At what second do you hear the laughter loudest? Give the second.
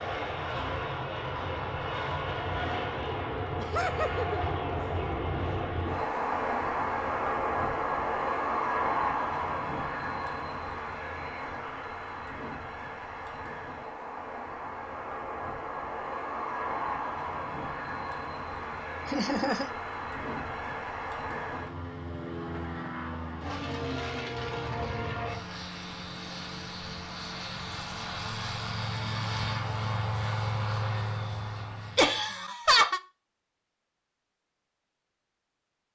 33 s.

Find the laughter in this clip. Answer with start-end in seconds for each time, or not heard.
3.5-4.4, 19.1-19.7, 31.9-33.0.